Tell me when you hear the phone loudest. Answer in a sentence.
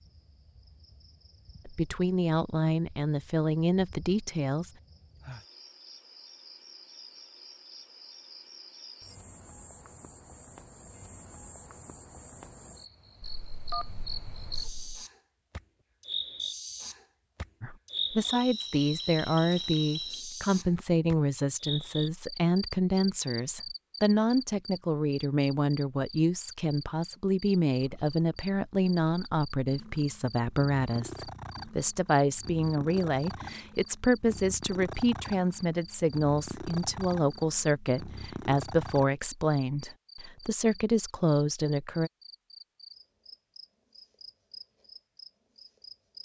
The loudest moment of the phone is at 14 seconds.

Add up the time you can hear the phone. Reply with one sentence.
The phone can be heard for 2 seconds in total.